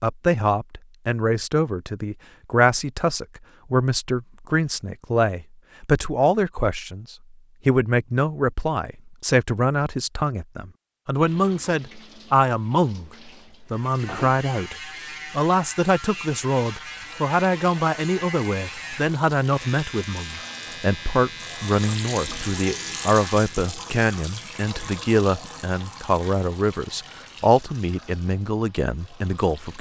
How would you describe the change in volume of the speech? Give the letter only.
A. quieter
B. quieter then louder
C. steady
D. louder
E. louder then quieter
C.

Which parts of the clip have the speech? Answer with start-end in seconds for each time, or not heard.
0.0-29.7.